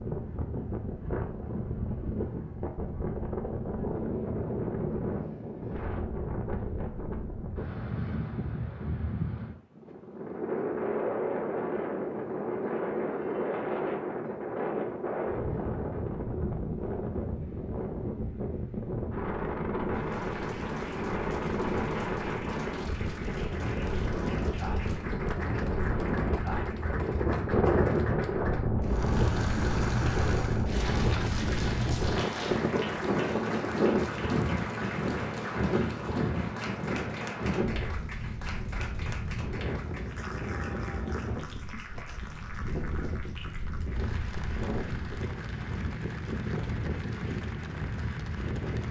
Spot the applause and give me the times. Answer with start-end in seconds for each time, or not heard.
19.9-48.8.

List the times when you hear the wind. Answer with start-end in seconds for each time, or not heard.
0.0-48.8.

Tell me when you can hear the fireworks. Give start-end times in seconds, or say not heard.
not heard.